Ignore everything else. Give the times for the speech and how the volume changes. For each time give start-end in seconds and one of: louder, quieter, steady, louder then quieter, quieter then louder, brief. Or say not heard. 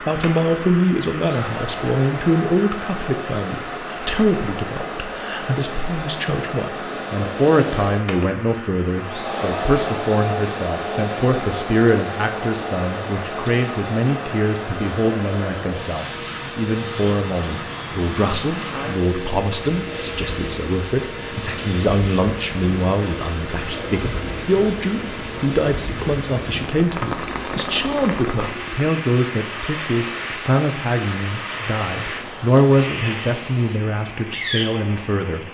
0.0-35.4 steady.